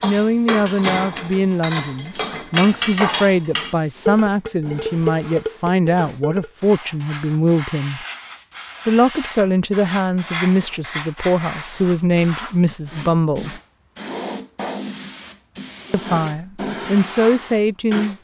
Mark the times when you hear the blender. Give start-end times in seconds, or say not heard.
not heard.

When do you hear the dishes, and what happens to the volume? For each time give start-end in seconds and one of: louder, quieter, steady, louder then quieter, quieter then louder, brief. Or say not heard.
0.0-6.5 steady.